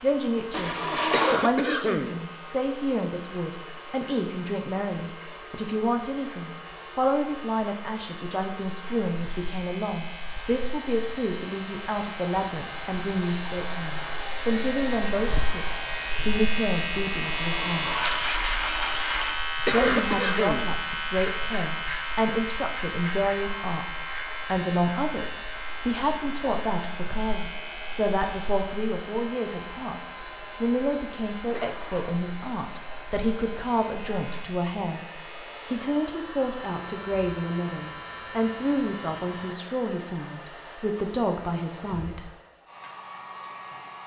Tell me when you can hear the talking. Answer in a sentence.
The talking can be heard from 0.0 to 18.1 s, from 19.7 to 35.0 s and from 35.7 to 42.3 s.